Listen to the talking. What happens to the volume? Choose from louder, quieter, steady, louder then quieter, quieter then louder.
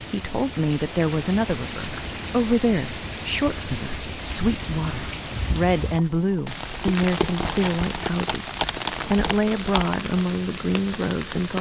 steady.